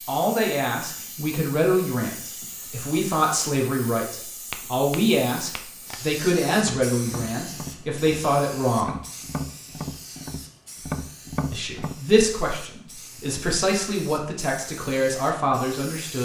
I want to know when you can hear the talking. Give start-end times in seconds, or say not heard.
0.1-9.1, 11.5-16.1.